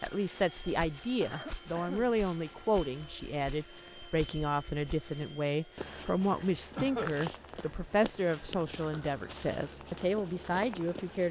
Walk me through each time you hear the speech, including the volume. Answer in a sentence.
You can hear the speech from 0.0 to 11.2 s, at a steady volume.